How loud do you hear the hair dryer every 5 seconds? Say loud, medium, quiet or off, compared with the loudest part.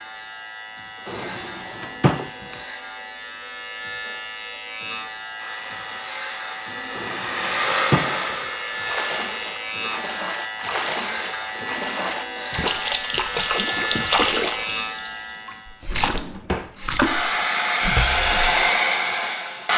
off, medium, off, loud.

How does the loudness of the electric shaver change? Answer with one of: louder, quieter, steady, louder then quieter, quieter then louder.
louder.